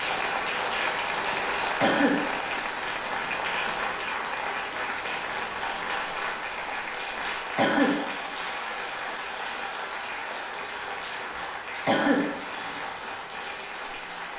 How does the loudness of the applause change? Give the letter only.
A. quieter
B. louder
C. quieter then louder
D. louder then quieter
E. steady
A.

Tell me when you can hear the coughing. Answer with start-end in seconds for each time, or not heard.
1.8-2.3, 7.5-8.1, 11.8-12.3.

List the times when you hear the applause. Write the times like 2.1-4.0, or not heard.
0.0-14.3.